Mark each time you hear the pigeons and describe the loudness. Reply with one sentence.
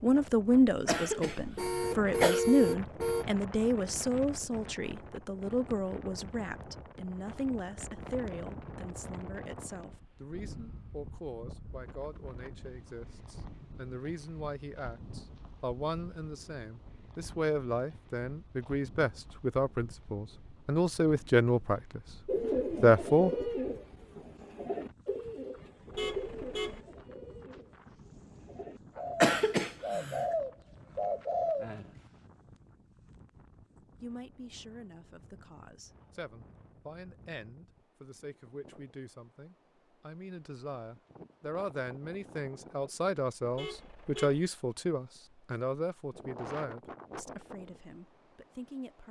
You can hear the pigeons from 22.2 to 31.9 s, getting quieter then louder.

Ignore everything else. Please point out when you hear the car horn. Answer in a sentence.
You can hear the car horn from 1.6 to 3.2 s, from 25.9 to 26.8 s and from 43.5 to 44.5 s.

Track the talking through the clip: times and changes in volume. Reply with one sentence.
The talking can be heard from 0.0 to 22.0 s, getting quieter then louder; briefly from 22.8 to 23.3 s; and from 33.8 to 49.0 s, getting louder then quieter.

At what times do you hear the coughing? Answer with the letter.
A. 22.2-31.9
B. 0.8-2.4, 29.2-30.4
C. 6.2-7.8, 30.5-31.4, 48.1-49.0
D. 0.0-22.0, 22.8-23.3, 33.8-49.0
B.